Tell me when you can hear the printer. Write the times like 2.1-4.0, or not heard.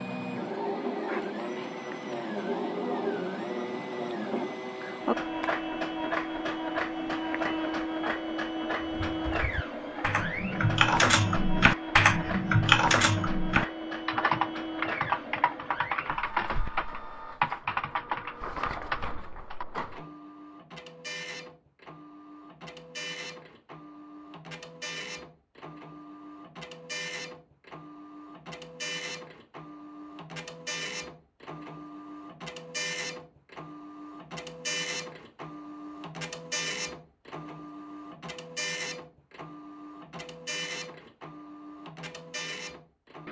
0.0-43.2.